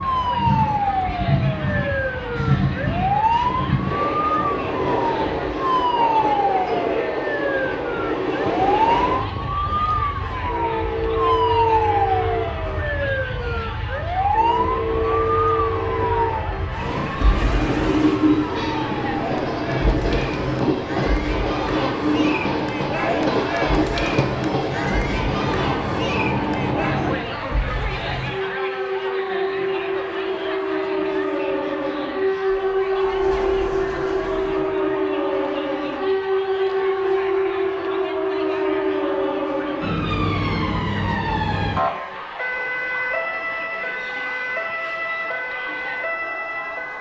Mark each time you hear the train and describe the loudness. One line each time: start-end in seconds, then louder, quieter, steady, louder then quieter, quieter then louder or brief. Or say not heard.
0.0-27.2 steady.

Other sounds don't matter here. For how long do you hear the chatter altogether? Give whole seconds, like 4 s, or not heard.
47 s.